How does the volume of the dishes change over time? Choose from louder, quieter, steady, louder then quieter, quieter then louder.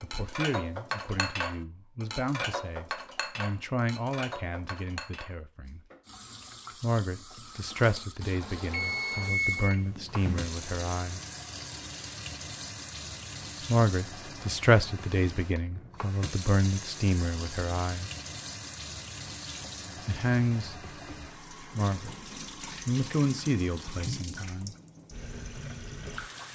quieter.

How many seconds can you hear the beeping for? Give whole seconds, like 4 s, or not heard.
2 s.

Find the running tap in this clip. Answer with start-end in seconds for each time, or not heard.
6.0-26.5.